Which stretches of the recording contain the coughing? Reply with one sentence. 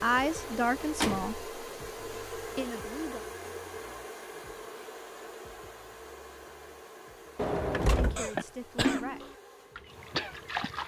You can hear the coughing from 8.2 to 9.1 s.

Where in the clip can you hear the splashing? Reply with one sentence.
The splashing can be heard from 8.3 to 10.8 s.